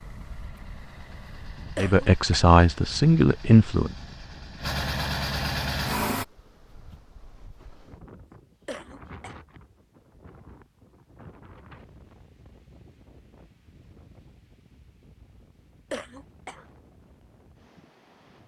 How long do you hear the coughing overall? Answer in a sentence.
You can hear the coughing for 2 seconds altogether.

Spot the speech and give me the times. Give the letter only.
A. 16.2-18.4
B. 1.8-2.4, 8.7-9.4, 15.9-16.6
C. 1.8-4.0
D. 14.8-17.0
C.